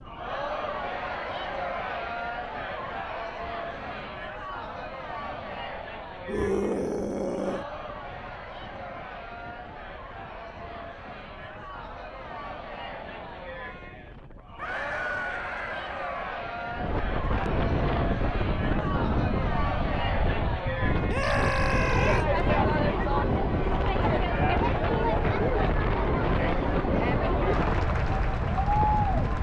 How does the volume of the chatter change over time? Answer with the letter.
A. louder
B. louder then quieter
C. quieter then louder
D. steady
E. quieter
C.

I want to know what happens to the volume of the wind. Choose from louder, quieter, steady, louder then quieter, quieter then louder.
louder.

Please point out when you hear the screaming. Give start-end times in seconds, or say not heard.
6.2-7.7, 14.6-16.3, 21.1-22.2.